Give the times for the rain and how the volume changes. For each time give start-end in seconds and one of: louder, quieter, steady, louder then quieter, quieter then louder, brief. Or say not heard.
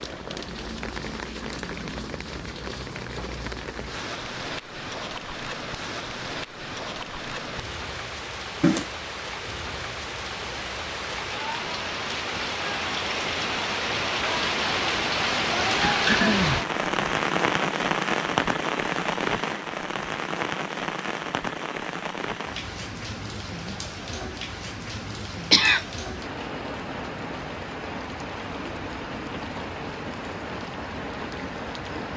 0.0-32.1 louder then quieter.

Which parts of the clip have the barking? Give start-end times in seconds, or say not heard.
not heard.